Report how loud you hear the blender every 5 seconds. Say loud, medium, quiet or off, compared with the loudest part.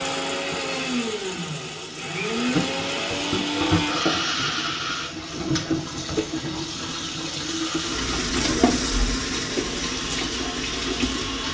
loud, medium, medium.